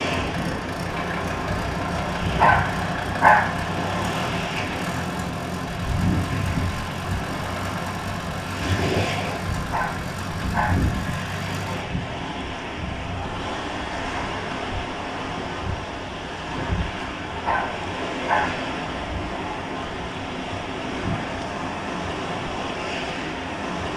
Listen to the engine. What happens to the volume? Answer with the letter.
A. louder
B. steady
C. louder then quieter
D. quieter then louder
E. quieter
B.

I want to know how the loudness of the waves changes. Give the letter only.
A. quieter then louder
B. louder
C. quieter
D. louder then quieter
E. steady
E.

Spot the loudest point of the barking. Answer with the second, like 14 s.
3 s.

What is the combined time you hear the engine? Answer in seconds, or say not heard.
12 s.